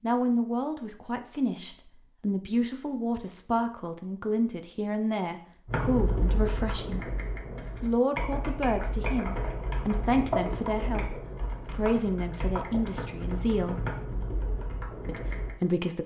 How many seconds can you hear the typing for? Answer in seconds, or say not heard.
10 s.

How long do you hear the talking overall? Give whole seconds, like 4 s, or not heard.
14 s.